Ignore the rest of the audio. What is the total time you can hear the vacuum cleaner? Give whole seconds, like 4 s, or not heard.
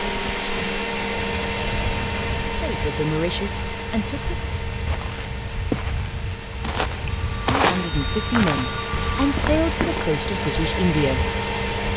12 s.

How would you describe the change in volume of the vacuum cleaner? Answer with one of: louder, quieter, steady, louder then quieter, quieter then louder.
quieter then louder.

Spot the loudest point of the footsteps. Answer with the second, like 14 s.
8 s.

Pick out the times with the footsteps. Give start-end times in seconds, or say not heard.
4.8-10.2.